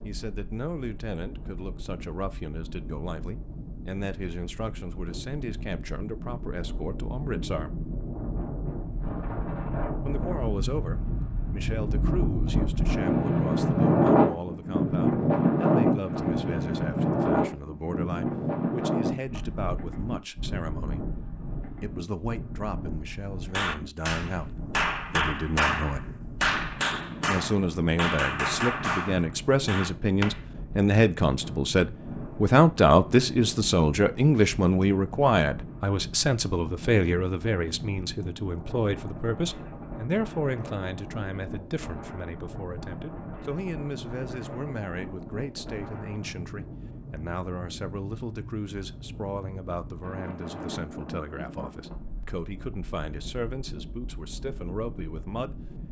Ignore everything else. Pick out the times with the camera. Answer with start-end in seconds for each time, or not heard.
not heard.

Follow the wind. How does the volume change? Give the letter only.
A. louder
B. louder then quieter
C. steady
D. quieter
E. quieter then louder
B.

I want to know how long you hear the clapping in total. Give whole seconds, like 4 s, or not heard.
7 s.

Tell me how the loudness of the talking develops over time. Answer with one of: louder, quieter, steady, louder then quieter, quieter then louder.
louder then quieter.